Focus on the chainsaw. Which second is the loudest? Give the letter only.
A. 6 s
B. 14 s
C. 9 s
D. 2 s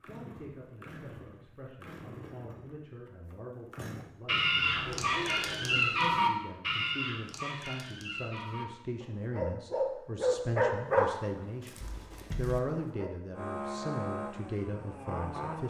B.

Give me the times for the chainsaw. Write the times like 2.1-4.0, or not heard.
0.0-4.1, 13.3-15.6.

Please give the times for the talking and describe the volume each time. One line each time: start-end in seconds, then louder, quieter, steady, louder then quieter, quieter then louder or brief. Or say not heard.
0.0-15.6 louder.